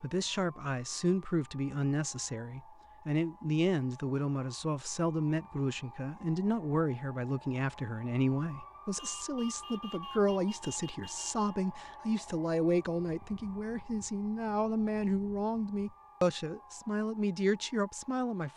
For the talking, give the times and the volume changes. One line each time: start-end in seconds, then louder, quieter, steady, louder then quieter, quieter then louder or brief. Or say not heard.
0.0-18.5 steady.